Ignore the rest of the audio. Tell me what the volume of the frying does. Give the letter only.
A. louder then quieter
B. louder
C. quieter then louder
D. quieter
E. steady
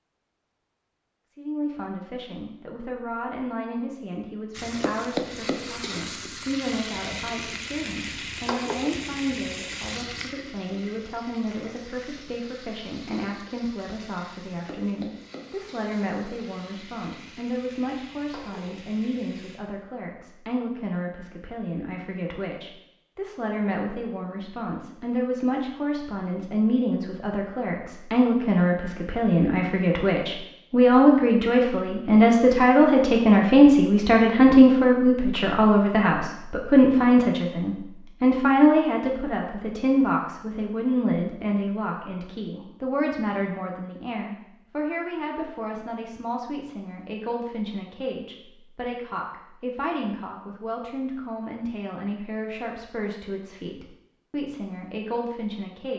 D.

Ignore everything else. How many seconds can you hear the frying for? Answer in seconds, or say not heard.
15 s.